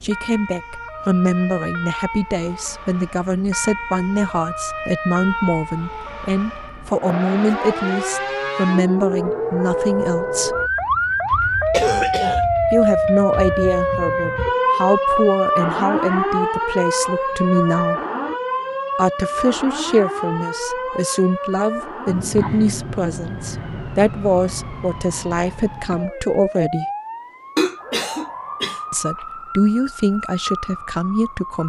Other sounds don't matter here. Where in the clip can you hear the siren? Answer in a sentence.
The siren can be heard from 0.0 to 31.6 s.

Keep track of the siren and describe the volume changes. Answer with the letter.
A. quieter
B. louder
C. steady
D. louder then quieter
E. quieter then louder
D.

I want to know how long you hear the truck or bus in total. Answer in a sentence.
You can't hear the truck or bus here.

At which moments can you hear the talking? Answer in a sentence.
You can hear the talking from 0.0 to 10.6 s, from 12.7 to 18.0 s, from 18.9 to 26.9 s and from 28.9 to 31.6 s.